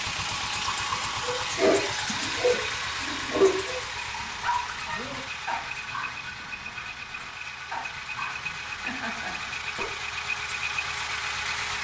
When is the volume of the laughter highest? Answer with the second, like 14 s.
9 s.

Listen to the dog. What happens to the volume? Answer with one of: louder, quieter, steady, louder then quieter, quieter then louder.
quieter.